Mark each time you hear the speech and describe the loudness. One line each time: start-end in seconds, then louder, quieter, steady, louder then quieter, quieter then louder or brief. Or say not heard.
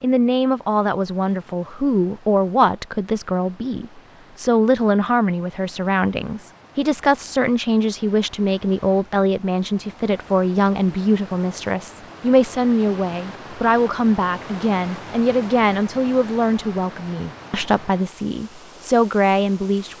0.0-19.9 steady.